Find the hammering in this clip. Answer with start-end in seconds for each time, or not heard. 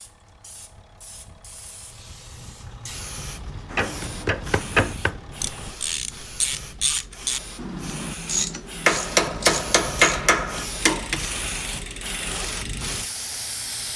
3.5-5.2, 8.8-11.2.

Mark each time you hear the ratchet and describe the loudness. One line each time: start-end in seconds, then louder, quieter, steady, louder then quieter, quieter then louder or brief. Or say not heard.
3.6-13.0 quieter.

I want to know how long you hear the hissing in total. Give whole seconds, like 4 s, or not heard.
14 s.